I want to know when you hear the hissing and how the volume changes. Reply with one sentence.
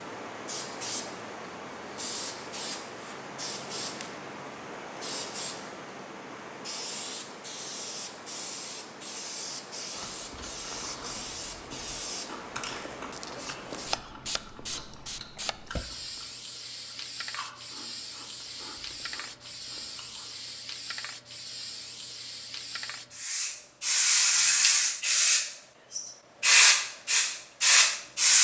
You can hear the hissing from 0.0 to 28.3 s, getting louder.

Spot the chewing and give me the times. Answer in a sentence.
You can hear the chewing from 9.9 to 20.6 s.